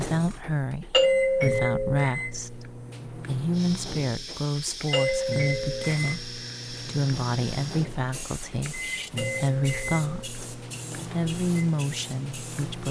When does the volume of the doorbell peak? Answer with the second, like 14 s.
1 s.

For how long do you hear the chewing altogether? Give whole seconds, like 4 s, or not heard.
not heard.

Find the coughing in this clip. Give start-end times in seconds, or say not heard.
not heard.